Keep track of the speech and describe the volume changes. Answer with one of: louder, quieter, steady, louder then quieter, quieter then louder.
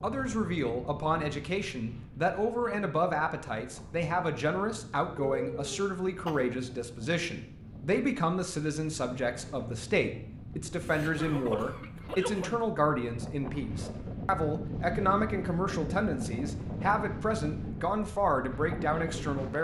steady.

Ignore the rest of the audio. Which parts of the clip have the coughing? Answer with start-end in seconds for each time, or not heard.
5.2-6.5, 10.8-12.6.